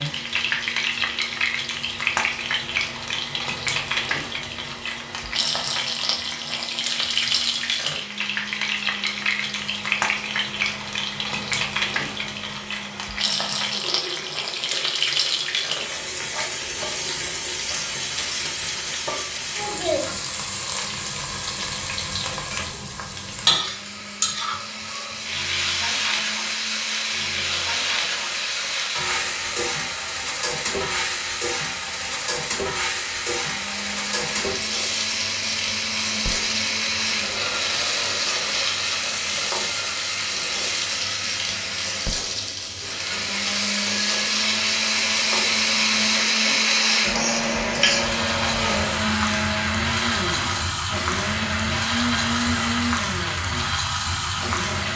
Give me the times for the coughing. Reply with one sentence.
The coughing can't be heard in this clip.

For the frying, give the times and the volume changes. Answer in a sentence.
The frying can be heard from 0.0 to 54.9 s, at a steady volume.